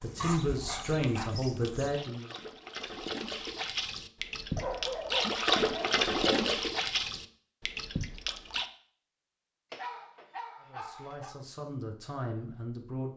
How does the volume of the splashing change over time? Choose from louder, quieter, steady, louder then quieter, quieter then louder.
louder then quieter.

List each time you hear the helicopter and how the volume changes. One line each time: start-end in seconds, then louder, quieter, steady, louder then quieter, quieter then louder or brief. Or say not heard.
not heard.